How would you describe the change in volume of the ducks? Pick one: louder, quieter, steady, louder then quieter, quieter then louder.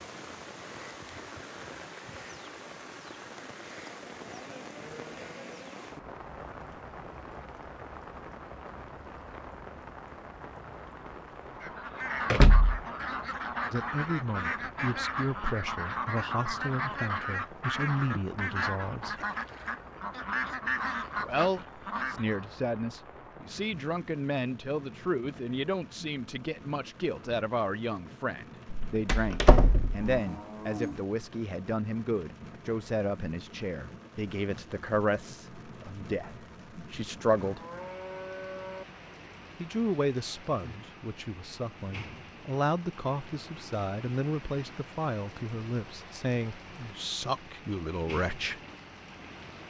steady.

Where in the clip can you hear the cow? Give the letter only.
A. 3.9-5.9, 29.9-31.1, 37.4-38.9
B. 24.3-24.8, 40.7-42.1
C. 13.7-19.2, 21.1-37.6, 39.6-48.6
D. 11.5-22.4
A.